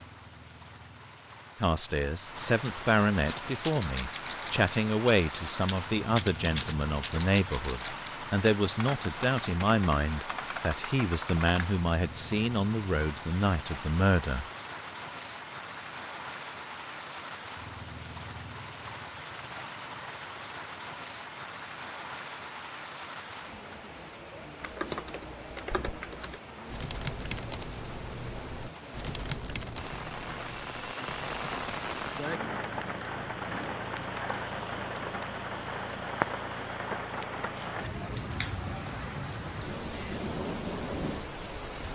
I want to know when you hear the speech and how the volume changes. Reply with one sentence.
The speech can be heard from 1.6 to 14.4 s, at a steady volume.